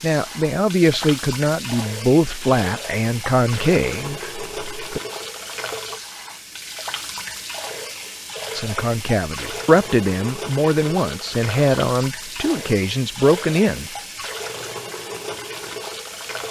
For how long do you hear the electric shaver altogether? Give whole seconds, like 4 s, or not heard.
not heard.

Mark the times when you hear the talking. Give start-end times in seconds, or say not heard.
0.0-5.0, 8.6-13.9.